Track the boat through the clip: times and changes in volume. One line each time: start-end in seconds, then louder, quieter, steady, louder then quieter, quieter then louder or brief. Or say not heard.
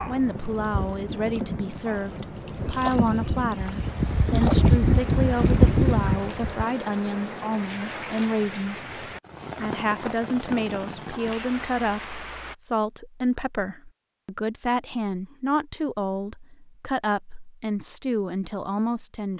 0.1-6.7 quieter then louder.